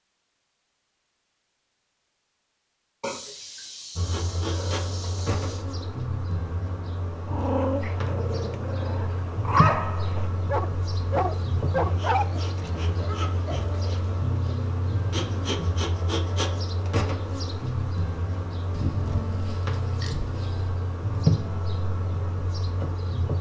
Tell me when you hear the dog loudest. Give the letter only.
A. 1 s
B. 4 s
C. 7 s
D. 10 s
D.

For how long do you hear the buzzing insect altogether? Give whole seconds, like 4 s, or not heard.
19 s.